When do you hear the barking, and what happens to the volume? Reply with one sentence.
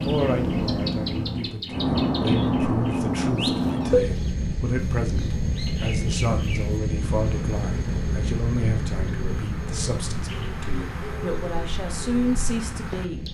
You can't hear the barking here.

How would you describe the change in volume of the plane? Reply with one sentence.
The volume of the plane goes down.